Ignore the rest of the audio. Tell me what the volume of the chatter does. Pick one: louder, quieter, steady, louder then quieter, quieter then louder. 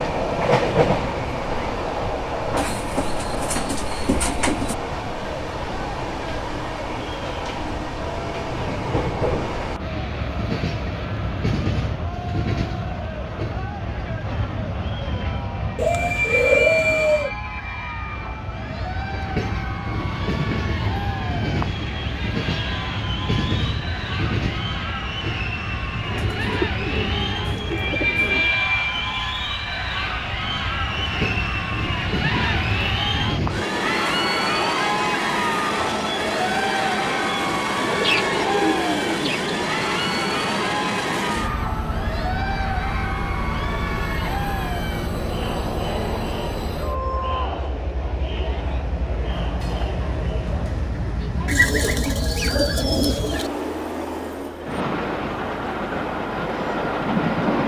louder then quieter.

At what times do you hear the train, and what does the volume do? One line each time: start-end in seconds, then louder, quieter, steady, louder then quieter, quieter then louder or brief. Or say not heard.
0.0-57.6 steady.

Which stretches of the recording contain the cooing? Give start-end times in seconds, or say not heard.
2.5-4.8, 15.8-17.3, 26.1-28.6, 37.8-39.5, 51.5-53.5.